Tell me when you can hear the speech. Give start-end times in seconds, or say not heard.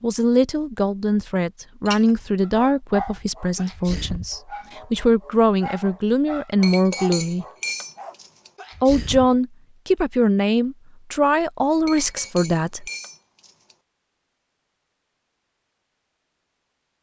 0.0-7.5, 8.8-12.8.